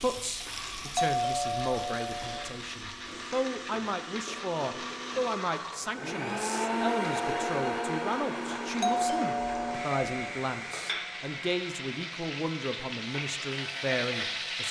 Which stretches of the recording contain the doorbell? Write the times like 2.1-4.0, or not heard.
0.9-2.5, 8.8-10.3.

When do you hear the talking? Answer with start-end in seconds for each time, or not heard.
0.0-14.6.